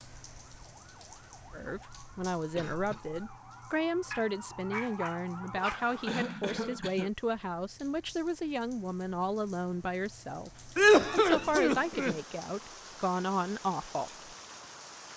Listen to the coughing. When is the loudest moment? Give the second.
11 s.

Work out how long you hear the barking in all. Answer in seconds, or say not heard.
2 s.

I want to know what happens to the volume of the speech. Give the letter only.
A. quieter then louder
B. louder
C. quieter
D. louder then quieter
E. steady
E.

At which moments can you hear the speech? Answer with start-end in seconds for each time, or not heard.
1.5-14.3.